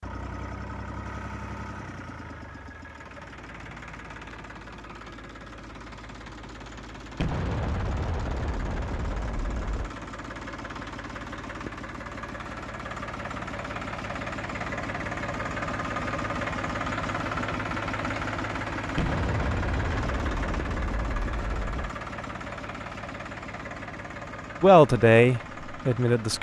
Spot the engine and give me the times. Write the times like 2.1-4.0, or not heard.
0.0-26.3.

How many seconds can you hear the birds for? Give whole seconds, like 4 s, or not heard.
not heard.